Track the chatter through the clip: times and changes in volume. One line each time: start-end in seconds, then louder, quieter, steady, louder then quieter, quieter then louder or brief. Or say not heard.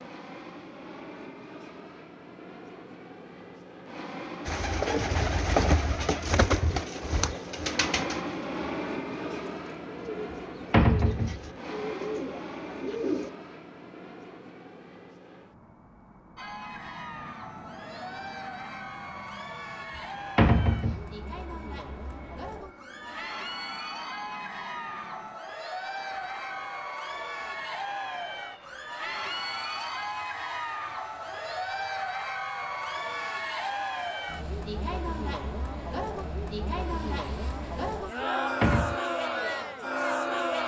16.4-40.6 louder.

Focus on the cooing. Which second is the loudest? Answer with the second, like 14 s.
6 s.